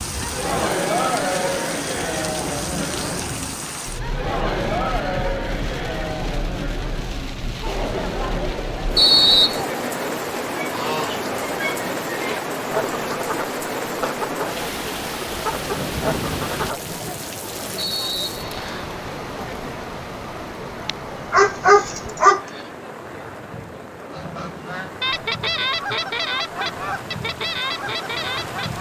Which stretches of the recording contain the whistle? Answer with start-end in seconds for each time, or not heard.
8.9-9.7, 17.8-18.9.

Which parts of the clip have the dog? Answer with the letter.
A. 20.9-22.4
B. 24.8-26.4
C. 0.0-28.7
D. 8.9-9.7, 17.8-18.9
A.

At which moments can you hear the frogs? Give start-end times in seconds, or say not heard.
not heard.